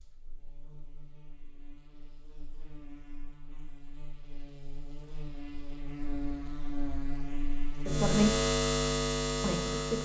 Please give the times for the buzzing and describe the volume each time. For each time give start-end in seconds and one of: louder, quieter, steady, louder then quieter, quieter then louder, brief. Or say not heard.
0.0-9.9 louder.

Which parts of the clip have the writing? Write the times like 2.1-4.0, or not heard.
not heard.